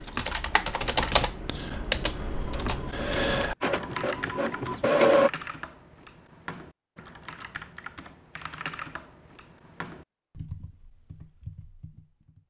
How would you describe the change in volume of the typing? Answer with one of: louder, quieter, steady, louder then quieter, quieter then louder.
quieter.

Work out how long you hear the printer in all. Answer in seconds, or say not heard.
3 s.